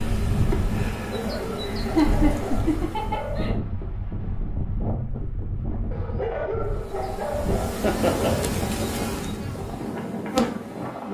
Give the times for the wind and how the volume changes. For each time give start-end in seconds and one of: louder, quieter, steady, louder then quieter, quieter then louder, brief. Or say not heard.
0.0-11.1 steady.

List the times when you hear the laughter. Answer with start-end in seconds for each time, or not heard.
1.6-3.5, 7.8-9.1.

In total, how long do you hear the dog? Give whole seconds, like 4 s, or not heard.
5 s.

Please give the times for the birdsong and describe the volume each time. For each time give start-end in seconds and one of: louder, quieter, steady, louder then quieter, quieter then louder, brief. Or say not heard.
not heard.